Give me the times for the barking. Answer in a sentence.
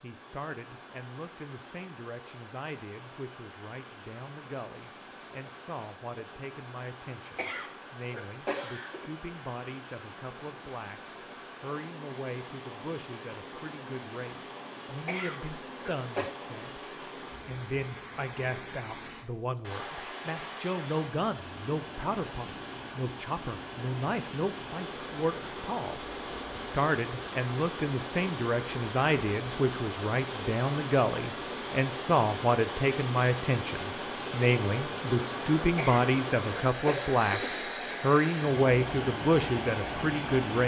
You can't hear the barking here.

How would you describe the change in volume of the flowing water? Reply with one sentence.
The loudness of the flowing water goes up.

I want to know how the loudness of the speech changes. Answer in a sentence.
The volume of the speech goes up.